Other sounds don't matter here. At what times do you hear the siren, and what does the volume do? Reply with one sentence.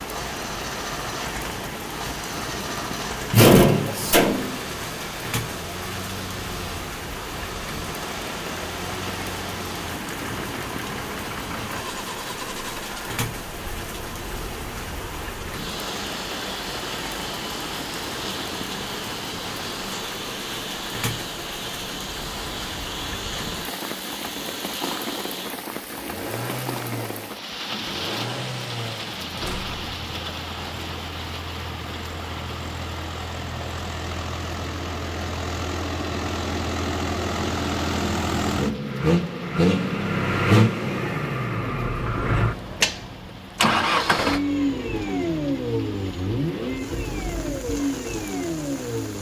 You can't hear the siren here.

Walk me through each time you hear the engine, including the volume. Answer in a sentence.
You can hear the engine from 0.0 to 49.1 s, getting louder.